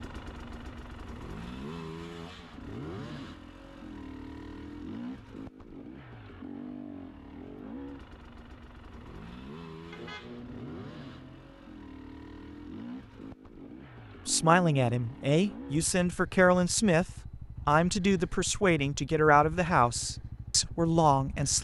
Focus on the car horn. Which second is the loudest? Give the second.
10 s.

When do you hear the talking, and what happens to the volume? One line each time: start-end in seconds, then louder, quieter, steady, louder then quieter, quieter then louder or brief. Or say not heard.
14.2-21.6 steady.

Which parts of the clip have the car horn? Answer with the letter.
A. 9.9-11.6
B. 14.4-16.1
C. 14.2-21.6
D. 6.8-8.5
A.